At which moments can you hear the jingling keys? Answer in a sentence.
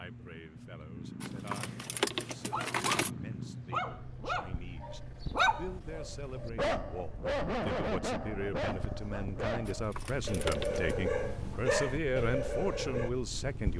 You can hear the jingling keys from 1.2 to 3.1 s and from 9.7 to 10.9 s.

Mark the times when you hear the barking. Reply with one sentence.
The barking can be heard from 2.3 to 13.1 s.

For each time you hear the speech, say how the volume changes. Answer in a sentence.
You can hear the speech from 0.0 to 13.7 s, getting louder.